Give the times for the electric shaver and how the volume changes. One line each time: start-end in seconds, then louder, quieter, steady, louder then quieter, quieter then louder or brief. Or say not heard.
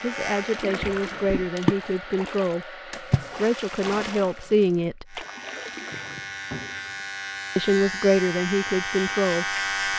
0.0-1.5 brief
5.0-9.9 louder.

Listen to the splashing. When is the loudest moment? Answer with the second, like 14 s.
2 s.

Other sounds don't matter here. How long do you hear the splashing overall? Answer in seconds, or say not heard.
6 s.